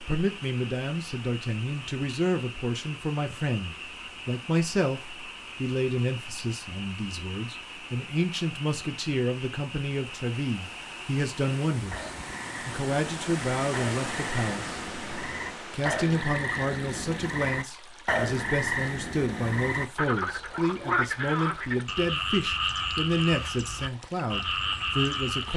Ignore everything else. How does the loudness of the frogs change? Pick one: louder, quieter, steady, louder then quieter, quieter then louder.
louder.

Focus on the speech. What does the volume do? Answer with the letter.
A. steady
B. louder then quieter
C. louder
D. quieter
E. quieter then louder
A.